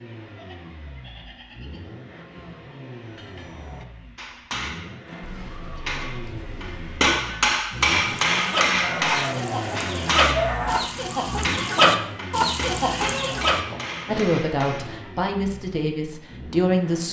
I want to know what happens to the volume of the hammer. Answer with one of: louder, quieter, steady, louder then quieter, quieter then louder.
louder then quieter.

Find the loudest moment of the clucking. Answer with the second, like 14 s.
12 s.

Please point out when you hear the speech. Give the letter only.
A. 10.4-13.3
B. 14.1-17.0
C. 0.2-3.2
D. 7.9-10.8
B.